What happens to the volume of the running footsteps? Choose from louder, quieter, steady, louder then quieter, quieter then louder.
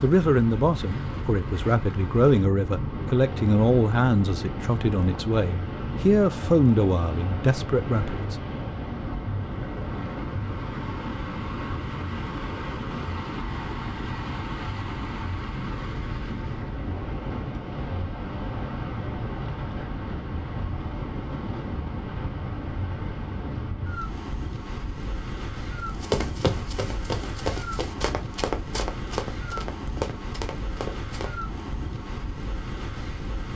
steady.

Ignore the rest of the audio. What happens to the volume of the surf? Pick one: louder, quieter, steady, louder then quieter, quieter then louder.
steady.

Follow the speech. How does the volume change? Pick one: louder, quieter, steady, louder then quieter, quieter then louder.
steady.